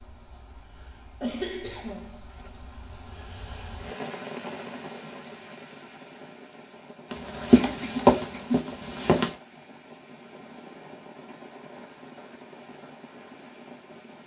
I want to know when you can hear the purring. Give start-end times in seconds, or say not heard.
not heard.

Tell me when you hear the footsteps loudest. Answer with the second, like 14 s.
8 s.